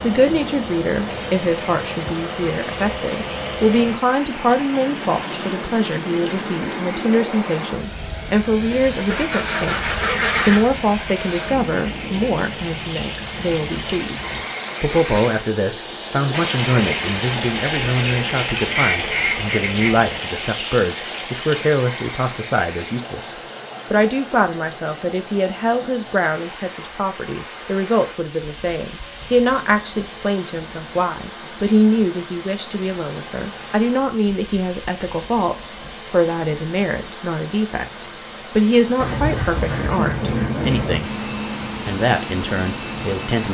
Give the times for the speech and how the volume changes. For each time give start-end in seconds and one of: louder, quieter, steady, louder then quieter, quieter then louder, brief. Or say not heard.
0.0-41.1 steady
41.9-43.4 brief.